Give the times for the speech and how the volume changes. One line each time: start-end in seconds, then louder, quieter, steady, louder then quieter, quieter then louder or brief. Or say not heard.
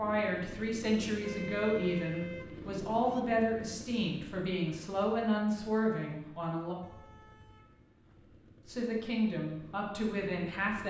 0.0-6.8 steady
8.7-10.8 brief.